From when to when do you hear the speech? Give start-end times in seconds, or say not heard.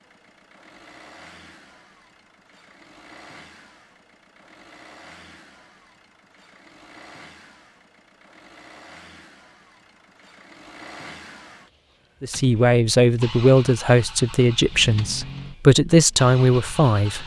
12.2-17.2.